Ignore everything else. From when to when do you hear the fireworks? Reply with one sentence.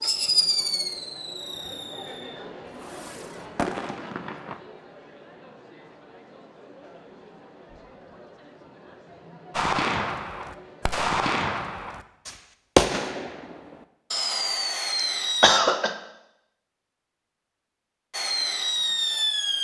The fireworks can be heard from 0.0 to 4.6 s, from 9.5 to 15.6 s and from 18.1 to 19.5 s.